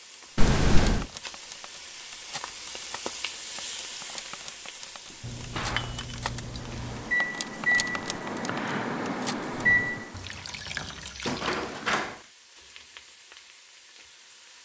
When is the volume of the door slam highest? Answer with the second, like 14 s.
12 s.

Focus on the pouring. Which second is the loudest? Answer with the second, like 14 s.
1 s.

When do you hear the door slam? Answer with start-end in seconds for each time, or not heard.
0.6-1.2, 5.1-6.0, 11.2-12.2.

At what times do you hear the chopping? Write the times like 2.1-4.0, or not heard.
not heard.